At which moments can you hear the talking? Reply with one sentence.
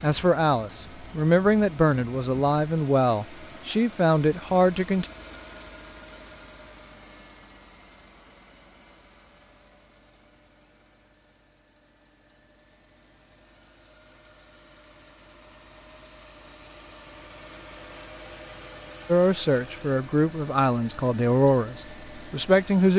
You can hear the talking from 0.0 to 5.1 s and from 19.1 to 22.9 s.